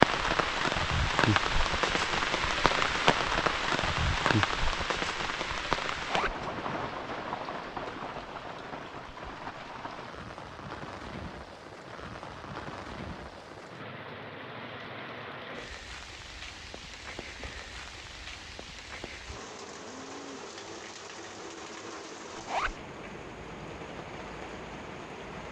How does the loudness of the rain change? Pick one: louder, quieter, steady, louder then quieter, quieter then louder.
quieter.